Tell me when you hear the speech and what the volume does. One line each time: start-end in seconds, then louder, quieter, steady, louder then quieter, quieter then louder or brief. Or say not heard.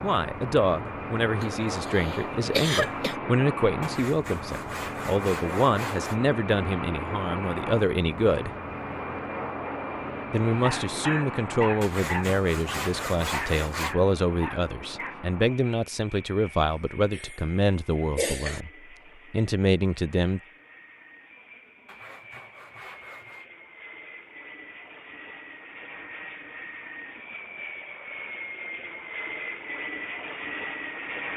0.0-8.5 steady
10.3-18.7 steady
19.3-20.4 brief.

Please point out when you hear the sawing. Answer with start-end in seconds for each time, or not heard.
3.8-6.2, 11.8-13.9, 21.9-23.4.